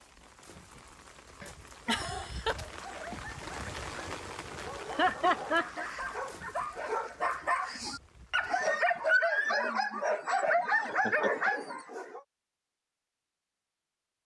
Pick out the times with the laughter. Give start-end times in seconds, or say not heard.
1.4-2.5, 4.9-5.8, 10.4-11.5.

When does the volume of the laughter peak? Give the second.
5 s.